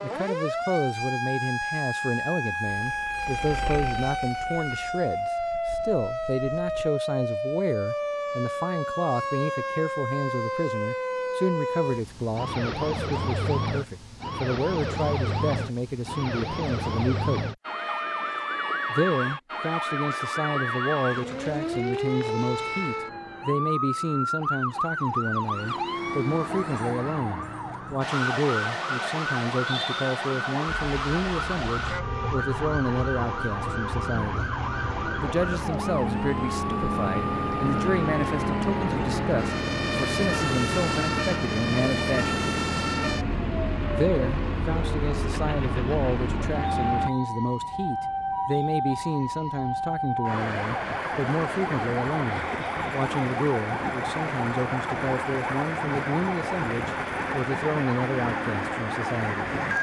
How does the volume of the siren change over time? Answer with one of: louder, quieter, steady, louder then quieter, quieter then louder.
steady.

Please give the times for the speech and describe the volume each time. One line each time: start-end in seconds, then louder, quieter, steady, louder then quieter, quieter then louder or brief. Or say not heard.
0.0-17.4 steady
18.9-34.5 steady
35.2-42.4 steady
43.9-59.5 steady.